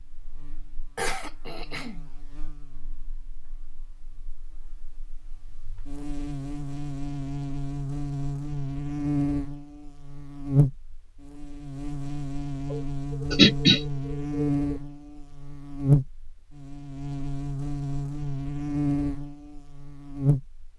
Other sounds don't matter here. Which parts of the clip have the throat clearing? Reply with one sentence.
You can hear the throat clearing from 0.9 to 2.1 s and from 12.7 to 14.5 s.